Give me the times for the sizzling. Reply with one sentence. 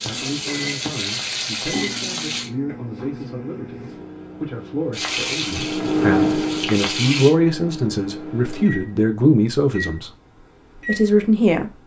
You can hear the sizzling from 0.0 to 2.5 s and from 4.9 to 7.3 s.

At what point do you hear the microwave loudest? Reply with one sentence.
The loudest moment of the microwave is at 6 seconds.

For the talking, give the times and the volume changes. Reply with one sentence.
You can hear the talking from 0.0 to 10.1 s, getting louder; and briefly from 10.8 to 11.7 s.